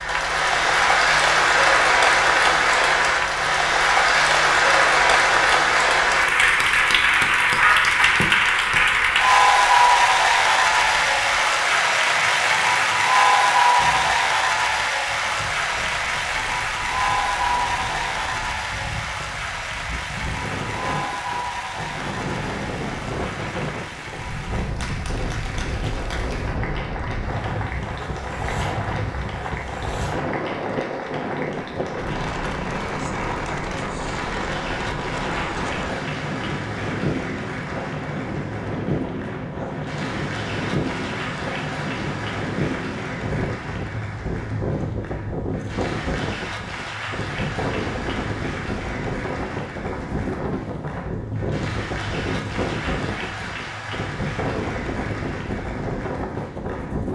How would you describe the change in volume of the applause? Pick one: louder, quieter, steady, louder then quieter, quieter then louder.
quieter.